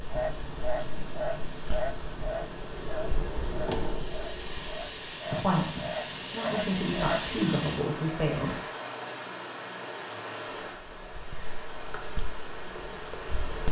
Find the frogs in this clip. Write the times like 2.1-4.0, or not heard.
0.1-7.2.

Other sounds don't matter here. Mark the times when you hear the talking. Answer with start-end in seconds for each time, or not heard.
5.2-8.6.